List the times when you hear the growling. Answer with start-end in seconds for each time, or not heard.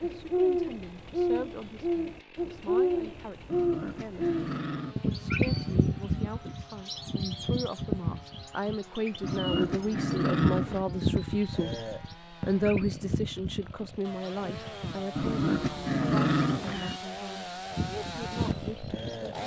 3.5-5.0, 9.2-10.8, 15.2-17.0.